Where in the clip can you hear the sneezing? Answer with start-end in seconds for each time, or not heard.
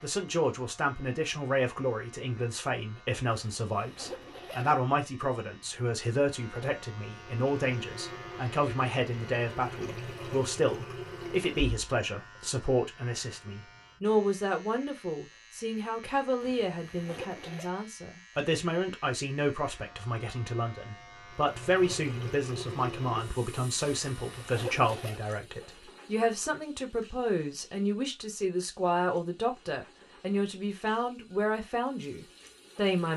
not heard.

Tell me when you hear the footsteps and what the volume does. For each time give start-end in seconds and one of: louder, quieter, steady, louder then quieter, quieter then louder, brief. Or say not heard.
not heard.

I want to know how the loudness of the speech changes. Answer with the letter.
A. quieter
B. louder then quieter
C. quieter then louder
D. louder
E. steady
E.